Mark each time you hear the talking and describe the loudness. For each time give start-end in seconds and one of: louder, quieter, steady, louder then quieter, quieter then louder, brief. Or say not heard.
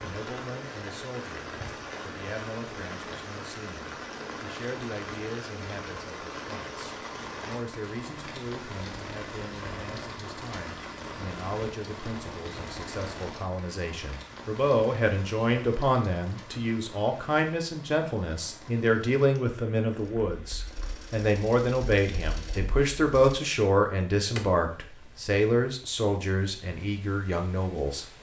0.0-28.1 louder.